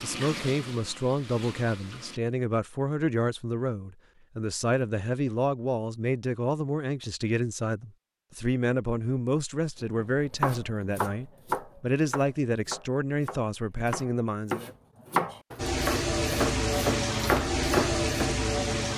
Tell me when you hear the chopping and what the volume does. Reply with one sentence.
The chopping can be heard from 10.0 to 18.3 s, getting quieter then louder.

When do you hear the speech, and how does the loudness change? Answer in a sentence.
The speech can be heard from 0.0 to 14.8 s, at a steady volume.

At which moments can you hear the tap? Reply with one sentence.
You can hear the tap from 0.0 to 2.2 s and from 15.6 to 18.9 s.